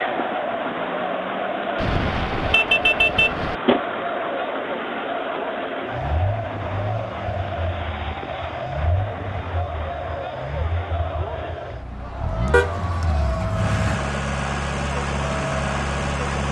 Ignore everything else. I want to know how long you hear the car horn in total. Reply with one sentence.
The car horn can be heard for 3 seconds in total.